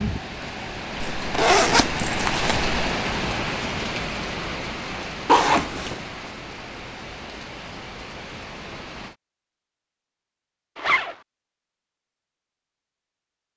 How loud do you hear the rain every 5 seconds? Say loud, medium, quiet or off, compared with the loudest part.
loud, medium, off.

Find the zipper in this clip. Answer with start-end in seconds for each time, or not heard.
1.0-2.8, 5.2-6.0, 10.8-11.2.